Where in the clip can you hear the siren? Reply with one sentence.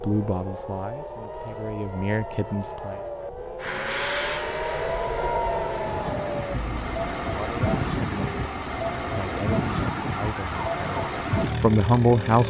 You can hear the siren from 0.0 to 12.4 s.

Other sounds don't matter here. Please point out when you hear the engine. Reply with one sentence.
The engine can be heard from 3.6 to 12.4 s.